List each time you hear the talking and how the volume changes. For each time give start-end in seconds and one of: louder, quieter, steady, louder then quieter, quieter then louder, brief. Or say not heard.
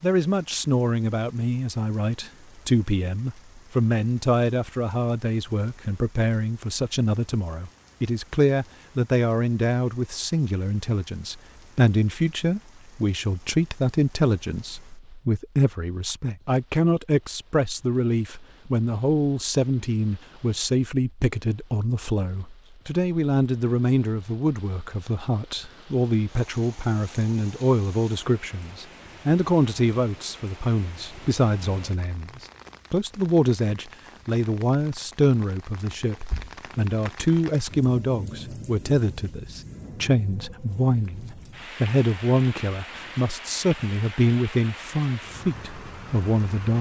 0.0-46.7 steady.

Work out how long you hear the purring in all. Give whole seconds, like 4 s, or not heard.
not heard.